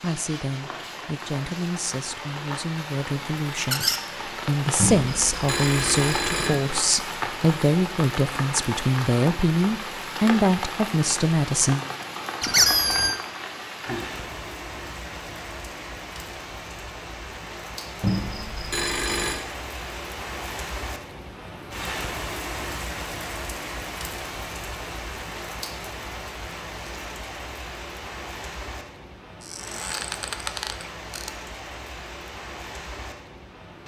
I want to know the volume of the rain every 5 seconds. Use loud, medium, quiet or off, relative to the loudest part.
loud, loud, loud, medium, loud, medium, medium.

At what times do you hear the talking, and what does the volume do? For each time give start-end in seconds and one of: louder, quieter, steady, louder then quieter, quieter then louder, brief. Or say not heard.
0.0-11.8 louder.